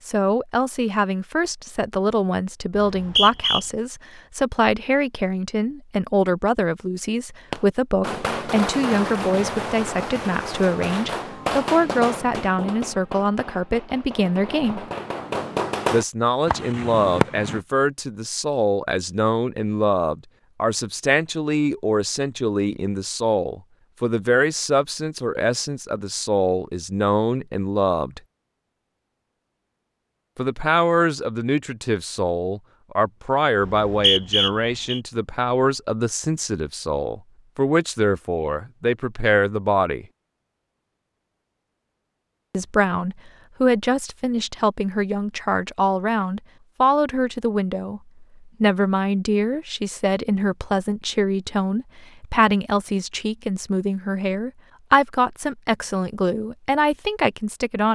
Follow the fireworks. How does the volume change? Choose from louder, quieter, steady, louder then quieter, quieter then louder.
quieter then louder.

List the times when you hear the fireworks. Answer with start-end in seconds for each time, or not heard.
7.5-17.6.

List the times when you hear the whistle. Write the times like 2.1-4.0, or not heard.
2.8-3.6, 33.6-35.0.